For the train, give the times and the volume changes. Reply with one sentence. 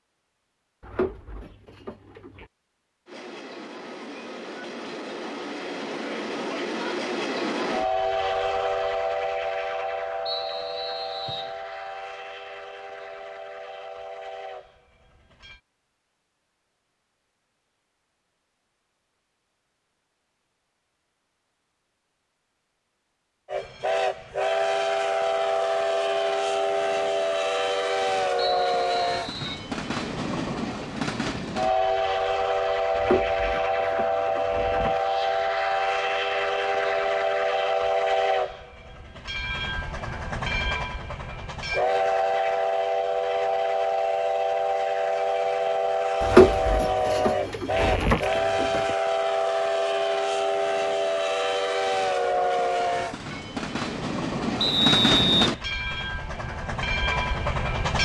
You can hear the train from 3.0 to 15.6 s, getting louder then quieter; and from 23.4 to 58.0 s, at a steady volume.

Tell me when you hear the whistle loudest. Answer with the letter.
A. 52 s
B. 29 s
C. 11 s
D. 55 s
D.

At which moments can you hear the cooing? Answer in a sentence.
The cooing can be heard from 0.8 to 2.5 s, from 33.0 to 35.0 s and from 46.2 to 48.9 s.